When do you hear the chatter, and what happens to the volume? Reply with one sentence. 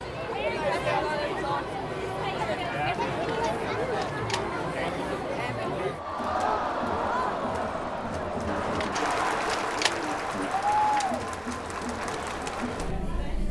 The chatter can be heard from 0.0 to 13.4 s, at a steady volume.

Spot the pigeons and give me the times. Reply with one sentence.
You can hear the pigeons from 3.0 to 4.5 s and from 8.4 to 11.2 s.